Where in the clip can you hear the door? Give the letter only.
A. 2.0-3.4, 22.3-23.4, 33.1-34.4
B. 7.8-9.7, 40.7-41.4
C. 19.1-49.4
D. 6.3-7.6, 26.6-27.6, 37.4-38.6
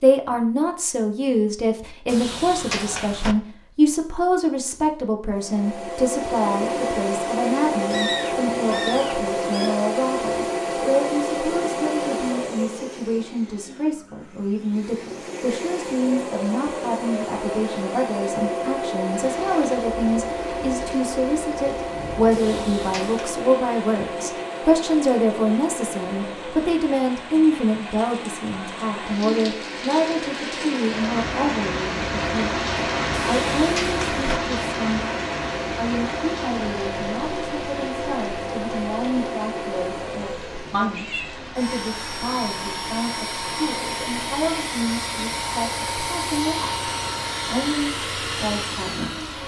A.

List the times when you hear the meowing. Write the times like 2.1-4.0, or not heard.
7.8-9.7, 40.7-41.4.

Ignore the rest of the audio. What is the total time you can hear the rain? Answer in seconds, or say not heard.
30 s.